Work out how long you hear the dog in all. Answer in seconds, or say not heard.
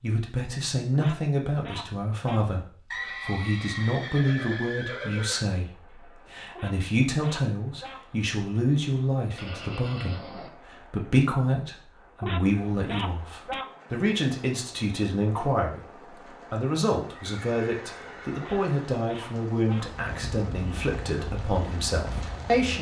6 s.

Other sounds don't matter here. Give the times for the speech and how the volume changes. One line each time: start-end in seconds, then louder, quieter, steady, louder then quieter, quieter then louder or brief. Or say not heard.
0.0-22.7 steady.